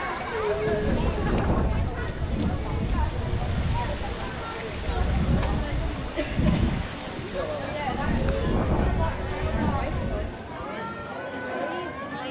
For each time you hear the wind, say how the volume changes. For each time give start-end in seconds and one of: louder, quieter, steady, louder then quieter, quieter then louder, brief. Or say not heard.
0.0-10.4 steady.